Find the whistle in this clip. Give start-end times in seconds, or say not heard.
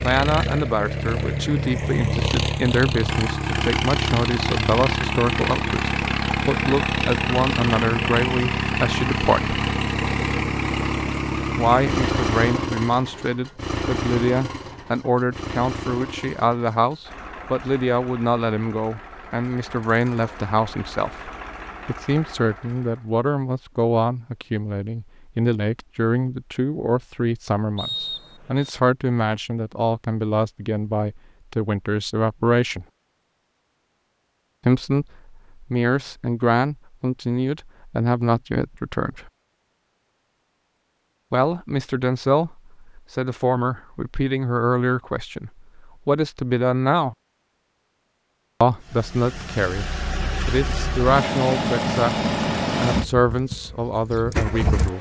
27.8-28.7.